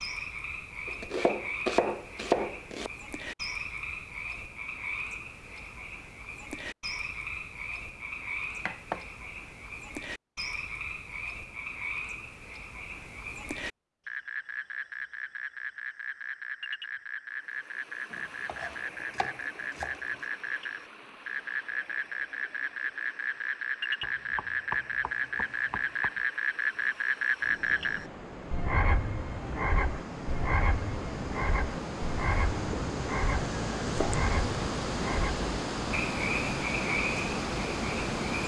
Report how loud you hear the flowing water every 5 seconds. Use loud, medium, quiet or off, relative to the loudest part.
off, off, off, quiet, quiet, quiet, loud, loud.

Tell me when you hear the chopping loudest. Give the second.
2 s.